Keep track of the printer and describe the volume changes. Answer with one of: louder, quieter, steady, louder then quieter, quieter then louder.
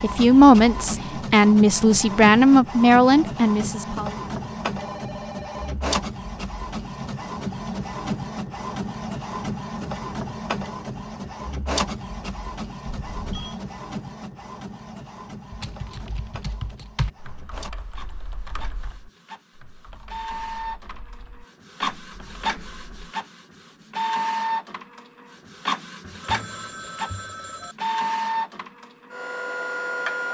quieter then louder.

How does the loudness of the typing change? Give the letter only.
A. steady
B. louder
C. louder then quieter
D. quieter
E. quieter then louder
D.